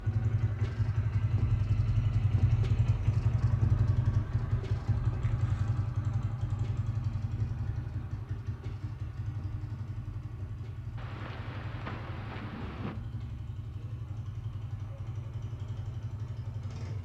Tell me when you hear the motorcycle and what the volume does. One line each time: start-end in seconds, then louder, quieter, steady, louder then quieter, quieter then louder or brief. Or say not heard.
0.0-16.9 quieter.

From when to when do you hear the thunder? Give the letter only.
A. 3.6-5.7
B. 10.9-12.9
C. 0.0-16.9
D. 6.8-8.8
B.